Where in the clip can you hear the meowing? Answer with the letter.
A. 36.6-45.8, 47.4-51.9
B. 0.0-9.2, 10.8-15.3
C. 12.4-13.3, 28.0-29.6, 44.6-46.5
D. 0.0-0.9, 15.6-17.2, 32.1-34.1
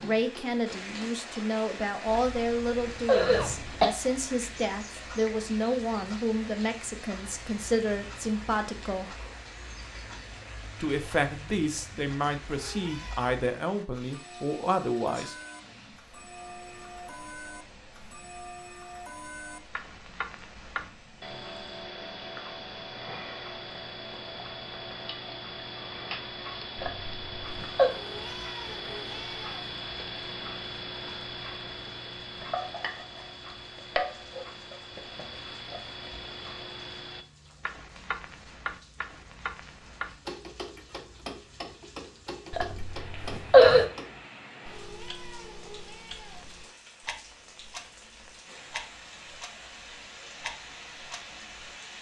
C.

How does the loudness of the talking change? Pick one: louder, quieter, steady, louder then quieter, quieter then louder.
steady.